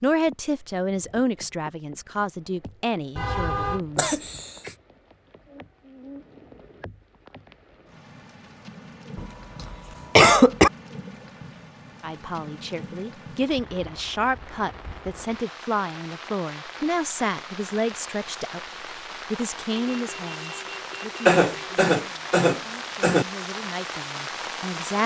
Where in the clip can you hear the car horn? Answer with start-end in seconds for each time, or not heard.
3.1-3.8, 19.8-21.8.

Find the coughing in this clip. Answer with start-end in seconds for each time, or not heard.
4.0-4.7, 9.2-10.7, 21.2-23.2.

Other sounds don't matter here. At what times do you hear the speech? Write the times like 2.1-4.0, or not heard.
0.0-4.2, 12.0-18.6, 19.3-25.0.